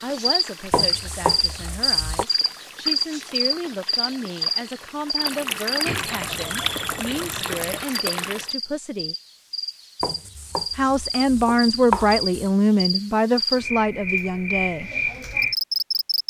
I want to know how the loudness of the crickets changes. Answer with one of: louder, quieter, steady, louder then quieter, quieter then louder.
quieter then louder.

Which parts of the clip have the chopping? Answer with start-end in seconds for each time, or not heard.
0.7-2.2, 10.0-12.5.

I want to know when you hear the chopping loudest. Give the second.
12 s.